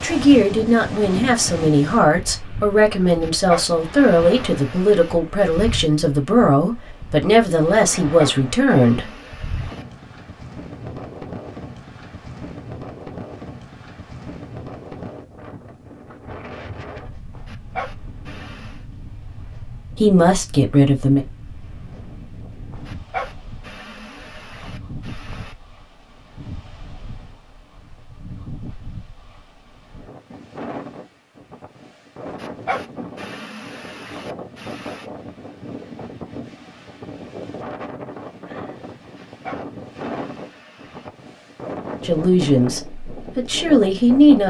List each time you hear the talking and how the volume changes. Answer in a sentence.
The talking can be heard from 0.0 to 9.1 s, at a steady volume; briefly from 19.9 to 21.2 s; and briefly from 42.0 to 44.4 s.